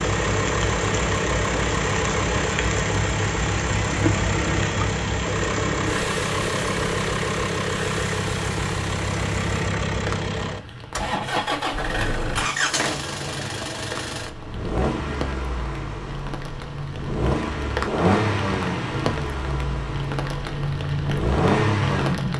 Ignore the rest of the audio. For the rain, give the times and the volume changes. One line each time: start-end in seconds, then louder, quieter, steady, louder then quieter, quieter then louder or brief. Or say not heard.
0.0-22.3 quieter then louder.